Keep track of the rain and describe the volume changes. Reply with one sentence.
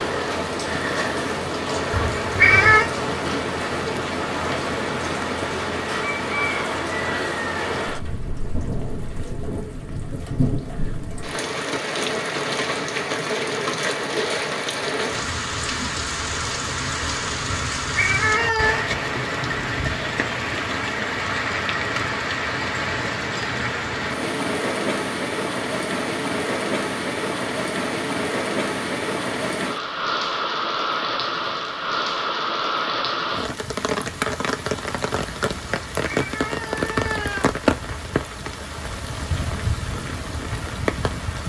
The volume of the rain stays about the same.